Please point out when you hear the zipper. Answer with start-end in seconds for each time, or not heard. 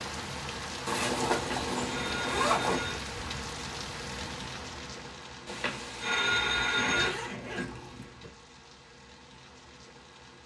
0.8-2.8, 6.2-8.3.